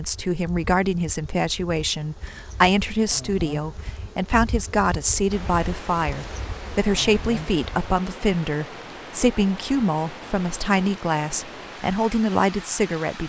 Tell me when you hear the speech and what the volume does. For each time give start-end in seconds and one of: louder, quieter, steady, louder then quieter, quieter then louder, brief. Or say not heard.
0.0-13.2 steady.